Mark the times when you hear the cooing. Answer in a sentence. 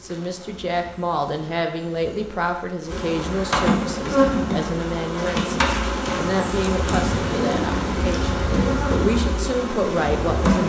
You can hear the cooing from 7.0 to 8.8 s.